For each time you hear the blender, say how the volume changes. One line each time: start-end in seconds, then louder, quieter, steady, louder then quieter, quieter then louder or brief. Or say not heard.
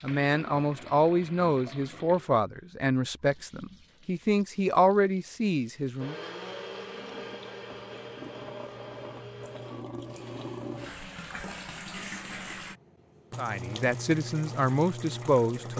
6.0-11.2 quieter.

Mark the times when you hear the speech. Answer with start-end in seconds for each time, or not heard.
0.0-6.2, 13.3-15.7.